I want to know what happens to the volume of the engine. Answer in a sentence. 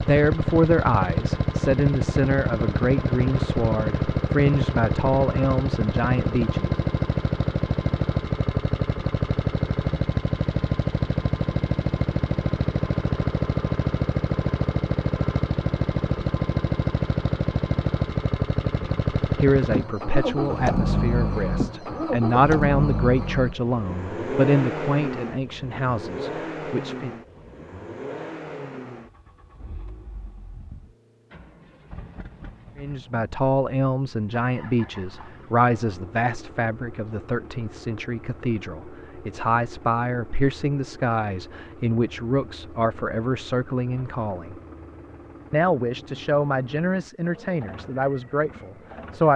The loudness of the engine goes down.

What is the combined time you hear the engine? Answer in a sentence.
You can hear the engine for 49 seconds altogether.